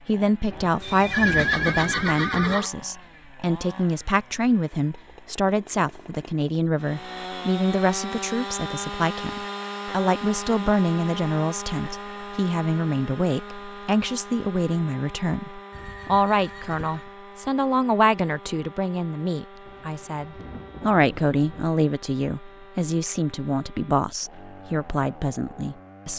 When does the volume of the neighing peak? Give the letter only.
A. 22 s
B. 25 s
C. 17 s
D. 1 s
D.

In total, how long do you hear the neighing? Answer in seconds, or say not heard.
3 s.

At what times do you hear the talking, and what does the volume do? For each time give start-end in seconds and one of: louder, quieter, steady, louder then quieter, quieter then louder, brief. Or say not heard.
0.1-26.1 steady.